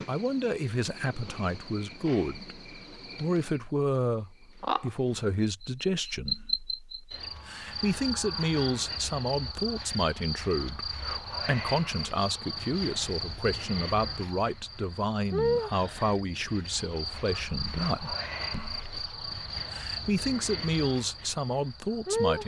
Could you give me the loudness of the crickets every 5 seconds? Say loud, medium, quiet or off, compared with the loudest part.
medium, loud, loud, loud, loud.